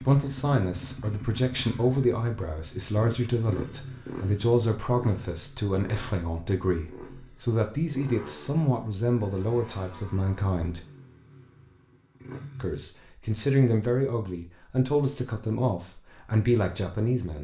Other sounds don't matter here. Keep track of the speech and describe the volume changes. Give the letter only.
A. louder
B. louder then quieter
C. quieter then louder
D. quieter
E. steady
E.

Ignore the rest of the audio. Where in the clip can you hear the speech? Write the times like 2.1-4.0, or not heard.
0.0-10.8, 12.6-17.4.